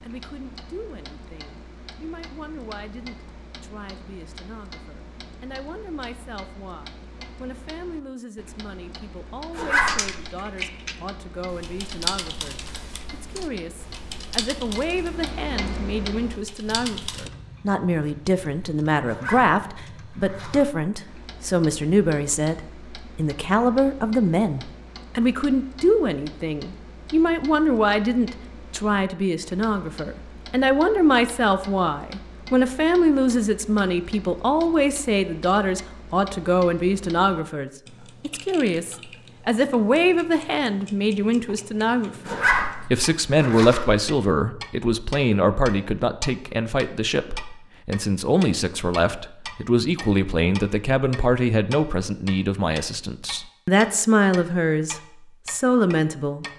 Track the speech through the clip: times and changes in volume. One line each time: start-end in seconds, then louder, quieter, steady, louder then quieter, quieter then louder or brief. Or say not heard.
0.0-56.5 louder.